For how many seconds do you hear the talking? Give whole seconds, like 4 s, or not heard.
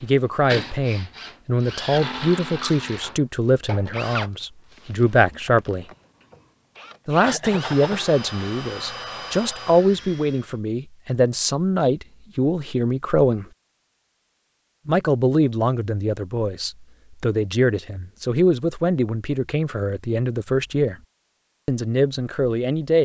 20 s.